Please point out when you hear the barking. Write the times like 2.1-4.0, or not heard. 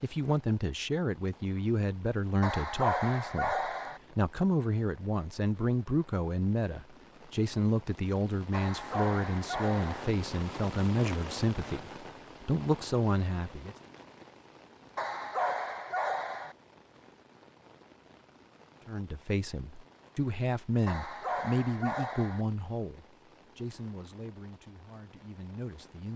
2.4-4.0, 8.5-10.1, 14.9-16.6, 20.9-22.4.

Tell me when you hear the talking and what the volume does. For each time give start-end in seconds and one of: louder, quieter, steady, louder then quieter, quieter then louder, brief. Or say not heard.
0.0-13.8 steady
18.9-26.1 quieter.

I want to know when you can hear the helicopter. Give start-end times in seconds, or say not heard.
not heard.